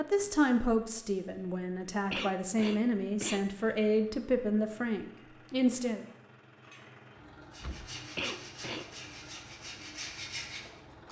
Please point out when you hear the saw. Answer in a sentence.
The saw can be heard from 7.5 to 11.0 s.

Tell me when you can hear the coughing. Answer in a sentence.
The coughing can be heard from 2.1 to 3.9 s and from 8.2 to 8.9 s.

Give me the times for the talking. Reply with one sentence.
You can hear the talking from 0.0 to 6.0 s.